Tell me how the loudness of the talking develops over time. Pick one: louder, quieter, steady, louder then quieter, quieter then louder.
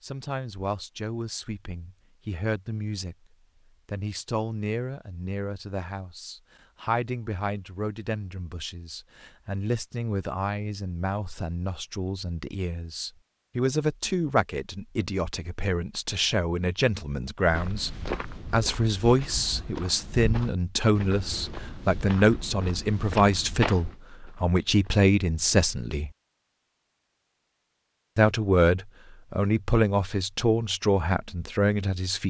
louder.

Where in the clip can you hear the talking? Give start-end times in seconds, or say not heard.
0.0-3.1, 3.9-26.1, 28.1-32.2.